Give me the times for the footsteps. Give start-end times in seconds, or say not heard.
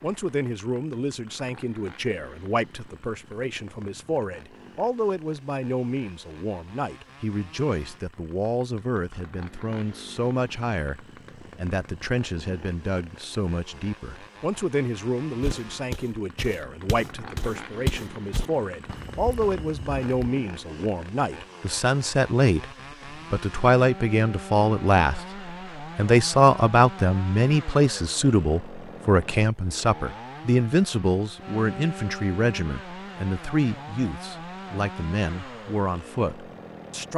15.4-20.4.